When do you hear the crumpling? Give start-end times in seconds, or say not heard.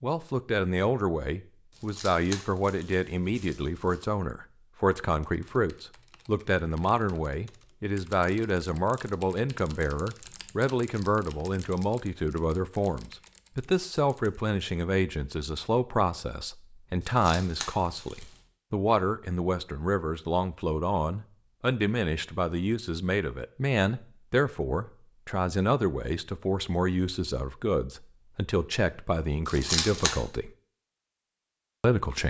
1.7-4.0, 17.0-18.4, 29.4-30.1.